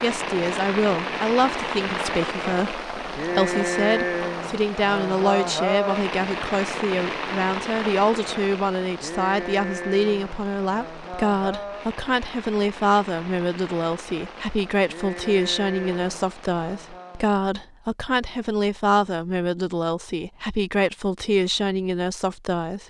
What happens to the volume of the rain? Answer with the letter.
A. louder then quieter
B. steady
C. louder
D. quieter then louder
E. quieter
E.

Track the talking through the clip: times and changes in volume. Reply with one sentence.
The talking can be heard from 0.0 to 22.8 s, at a steady volume.